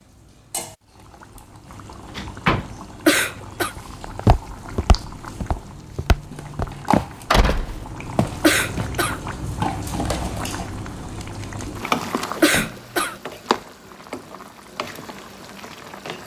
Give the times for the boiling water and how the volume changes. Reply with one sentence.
The boiling water can be heard from 0.0 to 16.2 s, getting louder then quieter.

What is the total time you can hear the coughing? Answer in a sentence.
You can hear the coughing for 2 seconds altogether.